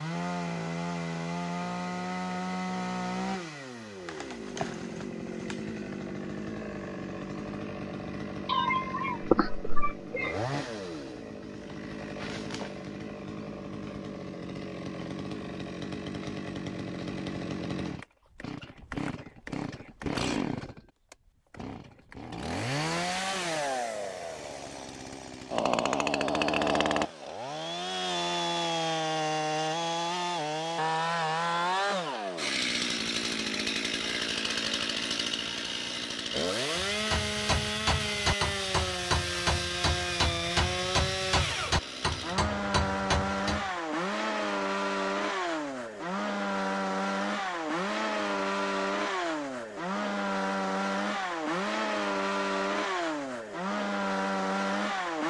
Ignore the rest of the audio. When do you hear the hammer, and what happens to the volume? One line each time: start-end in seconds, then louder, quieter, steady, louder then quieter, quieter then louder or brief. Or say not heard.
36.7-43.7 steady.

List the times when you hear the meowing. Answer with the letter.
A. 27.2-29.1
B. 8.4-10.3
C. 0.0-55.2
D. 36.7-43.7
B.